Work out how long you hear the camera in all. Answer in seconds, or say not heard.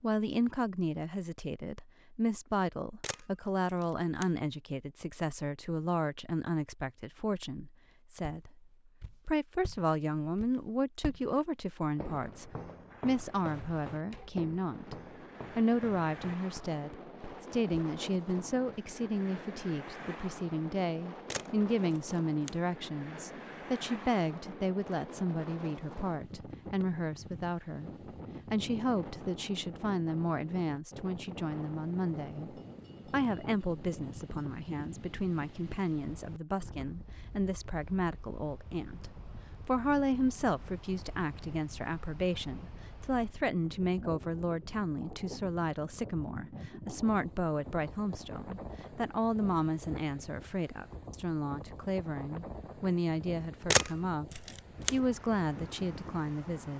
4 s.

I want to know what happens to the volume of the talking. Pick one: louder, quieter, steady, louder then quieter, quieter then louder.
steady.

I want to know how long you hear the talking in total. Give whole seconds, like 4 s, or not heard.
56 s.